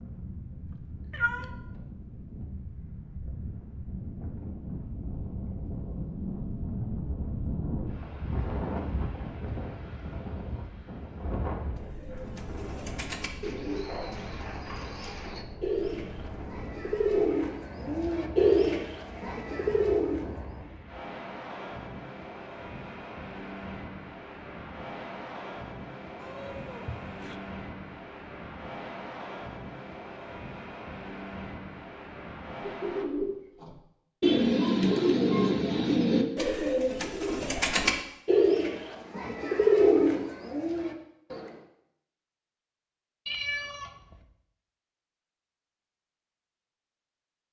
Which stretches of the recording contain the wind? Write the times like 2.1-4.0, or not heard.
0.0-33.0.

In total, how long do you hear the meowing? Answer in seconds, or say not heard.
3 s.